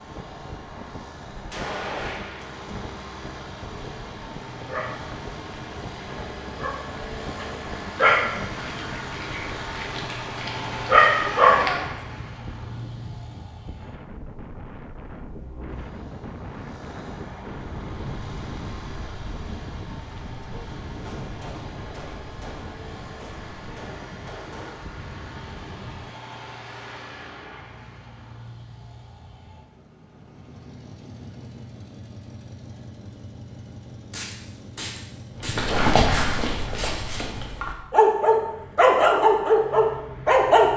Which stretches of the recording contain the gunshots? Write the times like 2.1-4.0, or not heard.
1.5-2.6, 21.0-24.9, 34.1-37.0.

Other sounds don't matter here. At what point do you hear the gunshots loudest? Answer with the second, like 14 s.
2 s.